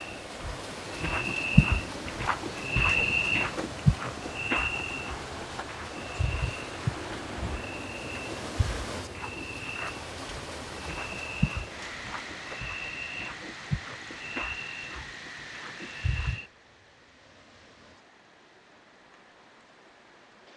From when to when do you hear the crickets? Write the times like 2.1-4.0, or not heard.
0.0-16.5.